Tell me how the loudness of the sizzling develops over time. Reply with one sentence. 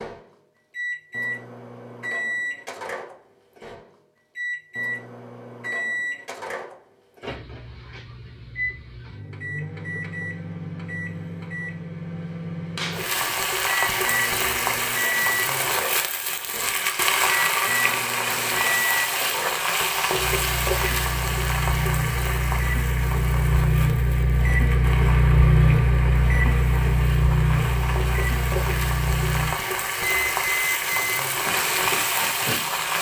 The loudness of the sizzling goes down, then up.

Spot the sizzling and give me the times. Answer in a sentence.
You can hear the sizzling from 12.9 to 32.9 s.